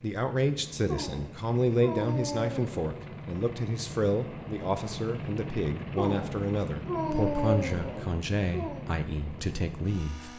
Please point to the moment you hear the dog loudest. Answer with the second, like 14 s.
7 s.